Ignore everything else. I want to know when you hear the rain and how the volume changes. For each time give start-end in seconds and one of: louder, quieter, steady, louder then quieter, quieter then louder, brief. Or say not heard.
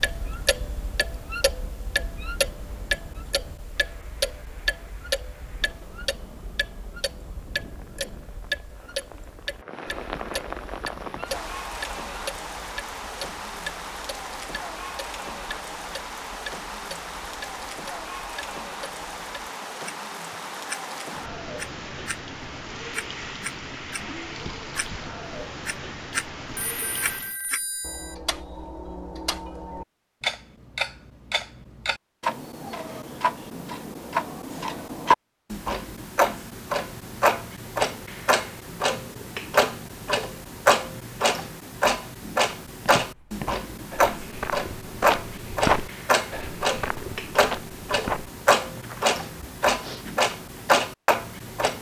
0.0-27.4 louder.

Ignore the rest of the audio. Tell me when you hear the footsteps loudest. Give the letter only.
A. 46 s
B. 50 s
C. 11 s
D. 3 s
A.